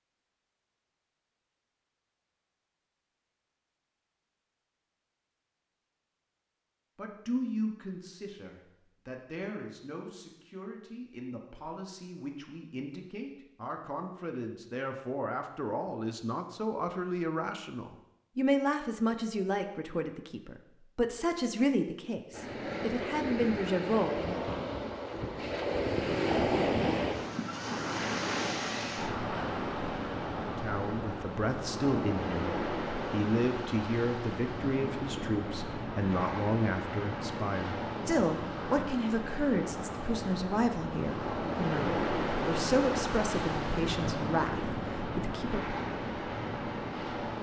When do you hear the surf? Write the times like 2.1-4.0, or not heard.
22.3-47.3.